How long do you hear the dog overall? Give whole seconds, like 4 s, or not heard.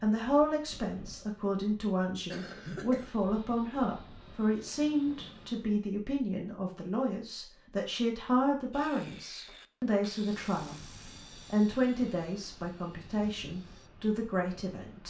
not heard.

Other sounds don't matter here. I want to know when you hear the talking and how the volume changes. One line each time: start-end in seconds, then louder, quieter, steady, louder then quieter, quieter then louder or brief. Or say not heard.
0.0-15.0 steady.